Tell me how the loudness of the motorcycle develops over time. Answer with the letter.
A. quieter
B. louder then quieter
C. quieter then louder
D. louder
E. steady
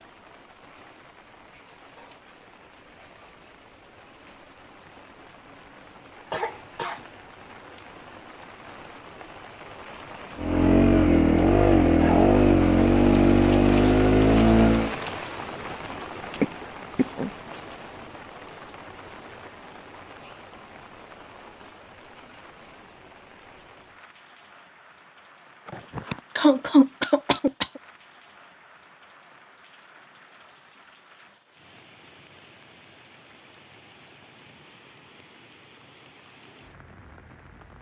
E.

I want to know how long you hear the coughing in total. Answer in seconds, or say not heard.
4 s.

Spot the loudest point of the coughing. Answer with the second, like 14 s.
27 s.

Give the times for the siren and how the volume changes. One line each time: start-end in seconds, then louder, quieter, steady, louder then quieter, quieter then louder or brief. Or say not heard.
not heard.